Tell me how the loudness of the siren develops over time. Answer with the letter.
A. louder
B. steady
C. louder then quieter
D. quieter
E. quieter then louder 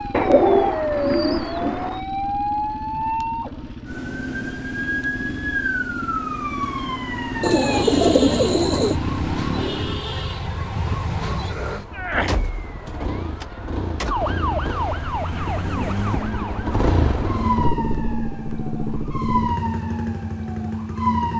B.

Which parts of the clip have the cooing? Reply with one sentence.
The cooing can be heard from 0.1 to 2.0 s, from 7.4 to 8.9 s and from 15.3 to 17.4 s.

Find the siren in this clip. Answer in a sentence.
The siren can be heard from 0.0 to 21.3 s.